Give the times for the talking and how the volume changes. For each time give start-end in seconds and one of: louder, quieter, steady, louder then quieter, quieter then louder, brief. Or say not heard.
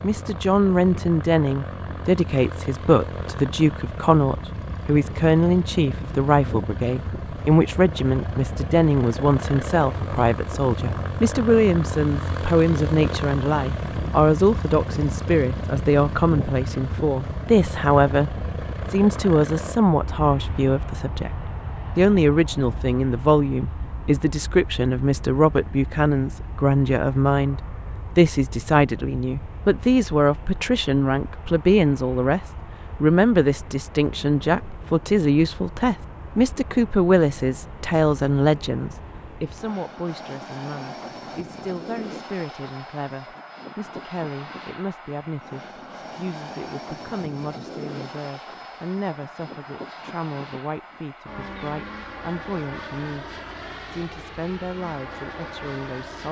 0.0-32.4 steady
33.0-53.3 quieter
53.9-56.2 brief.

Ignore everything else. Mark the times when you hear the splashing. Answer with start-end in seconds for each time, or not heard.
not heard.